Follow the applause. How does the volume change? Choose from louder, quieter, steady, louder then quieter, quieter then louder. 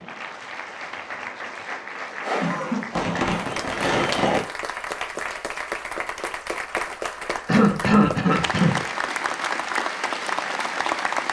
louder.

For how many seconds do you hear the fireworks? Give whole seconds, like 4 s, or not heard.
2 s.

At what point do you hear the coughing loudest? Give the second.
8 s.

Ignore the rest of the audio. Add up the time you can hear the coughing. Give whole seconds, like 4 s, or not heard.
2 s.